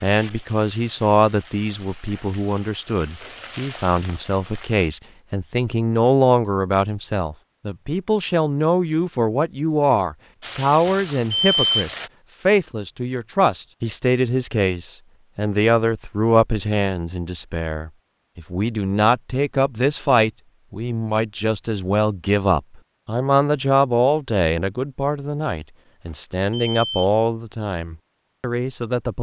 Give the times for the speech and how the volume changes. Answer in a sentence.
You can hear the speech from 0.0 to 29.1 s, at a steady volume.